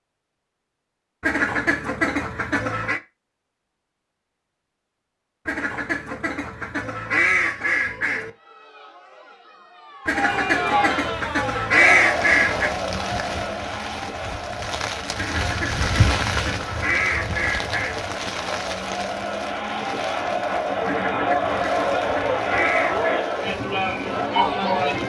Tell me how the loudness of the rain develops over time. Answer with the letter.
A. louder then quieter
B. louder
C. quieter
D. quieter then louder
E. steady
A.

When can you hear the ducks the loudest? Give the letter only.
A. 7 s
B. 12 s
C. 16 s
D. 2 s
B.